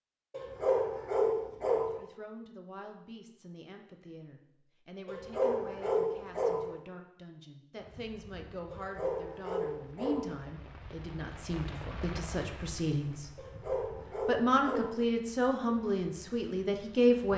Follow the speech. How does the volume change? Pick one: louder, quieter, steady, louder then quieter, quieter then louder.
louder.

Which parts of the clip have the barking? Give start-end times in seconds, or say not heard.
0.3-2.0, 5.0-6.7, 8.7-10.3, 13.3-15.0.